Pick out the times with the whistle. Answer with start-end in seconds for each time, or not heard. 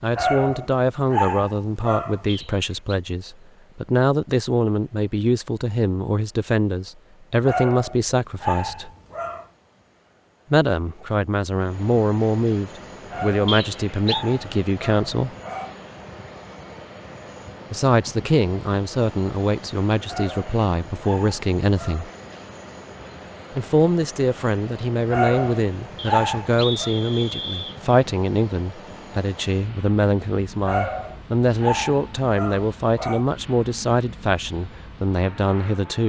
2.2-3.0, 13.4-14.2, 25.9-27.8.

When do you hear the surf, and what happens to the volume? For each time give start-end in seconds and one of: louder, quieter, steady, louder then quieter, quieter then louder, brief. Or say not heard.
not heard.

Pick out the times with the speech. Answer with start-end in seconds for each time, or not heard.
0.0-8.9, 10.5-15.3, 17.7-22.1, 23.5-36.0.